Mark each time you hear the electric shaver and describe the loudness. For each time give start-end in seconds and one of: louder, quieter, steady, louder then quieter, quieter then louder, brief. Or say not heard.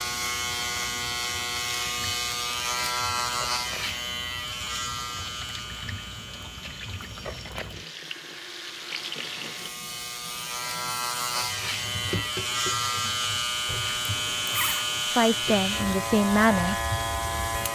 0.0-17.6 quieter then louder.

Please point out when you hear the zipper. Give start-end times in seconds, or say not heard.
14.1-14.8.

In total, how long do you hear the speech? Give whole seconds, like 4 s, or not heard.
2 s.